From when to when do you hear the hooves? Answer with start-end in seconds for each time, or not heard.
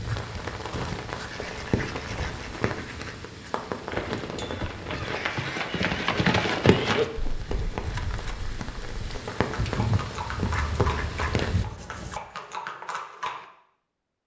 3.9-13.4.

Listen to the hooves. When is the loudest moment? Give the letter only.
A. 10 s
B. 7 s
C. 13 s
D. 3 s
B.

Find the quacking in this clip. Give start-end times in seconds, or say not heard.
1.3-3.1, 4.9-6.8, 10.5-12.2.